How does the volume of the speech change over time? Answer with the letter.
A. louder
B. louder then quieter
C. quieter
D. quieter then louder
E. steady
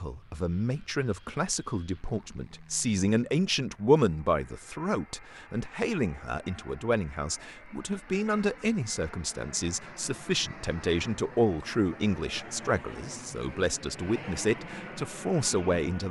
E.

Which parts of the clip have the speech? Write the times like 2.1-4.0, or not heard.
0.0-16.0.